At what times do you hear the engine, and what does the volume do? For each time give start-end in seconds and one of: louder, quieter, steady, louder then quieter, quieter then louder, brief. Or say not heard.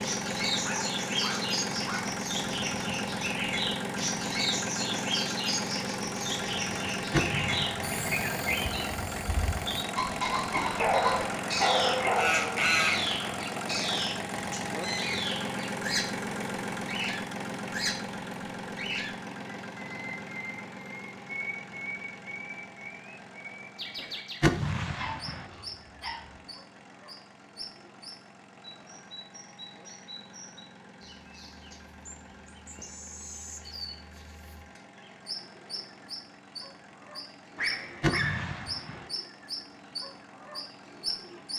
0.0-41.5 quieter.